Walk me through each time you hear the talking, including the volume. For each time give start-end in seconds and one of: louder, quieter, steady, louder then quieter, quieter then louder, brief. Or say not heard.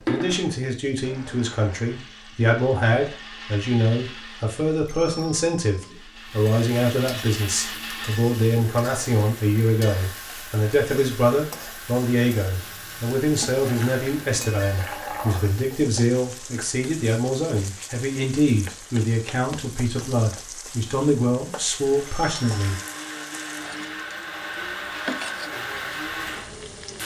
0.1-22.8 steady.